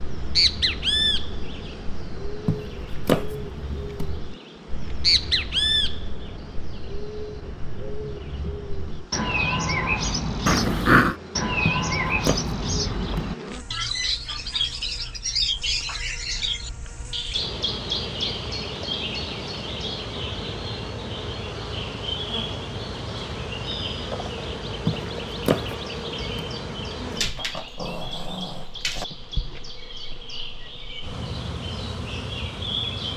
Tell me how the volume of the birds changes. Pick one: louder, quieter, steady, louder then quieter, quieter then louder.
quieter.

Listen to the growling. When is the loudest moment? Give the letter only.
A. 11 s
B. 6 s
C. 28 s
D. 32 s
A.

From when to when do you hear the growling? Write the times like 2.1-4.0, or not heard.
10.4-11.2, 27.1-29.1.